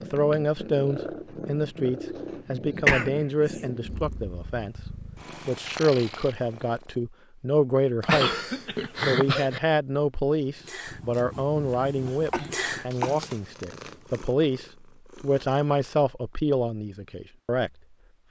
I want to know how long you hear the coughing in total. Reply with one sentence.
You can hear the coughing for 4 seconds altogether.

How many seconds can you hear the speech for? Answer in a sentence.
The speech can be heard for 16 seconds in total.